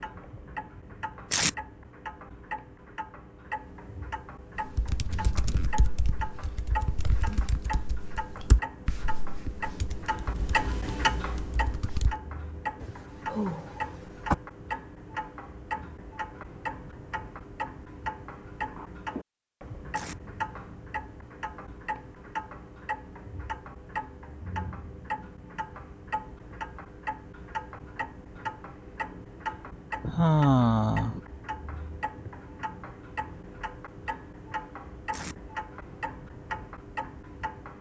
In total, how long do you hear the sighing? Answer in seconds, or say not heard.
3 s.